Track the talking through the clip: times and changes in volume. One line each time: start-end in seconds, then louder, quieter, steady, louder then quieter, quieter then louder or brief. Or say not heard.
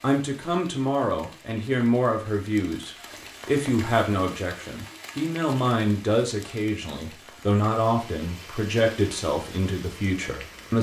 0.0-10.7 steady.